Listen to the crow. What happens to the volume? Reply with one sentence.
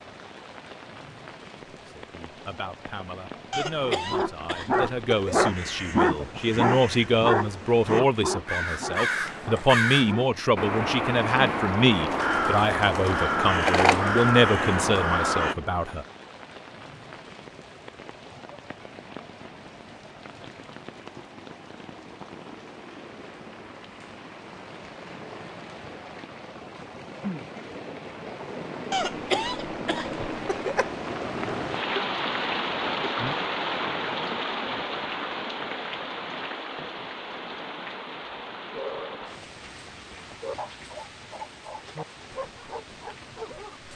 The volume of the crow goes up.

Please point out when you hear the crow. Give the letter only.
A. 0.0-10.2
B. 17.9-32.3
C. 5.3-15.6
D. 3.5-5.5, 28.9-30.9
C.